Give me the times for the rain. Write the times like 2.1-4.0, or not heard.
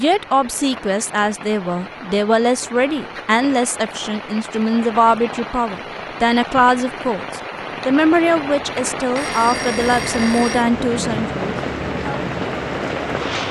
0.0-13.4.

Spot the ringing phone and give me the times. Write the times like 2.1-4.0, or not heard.
9.2-10.7.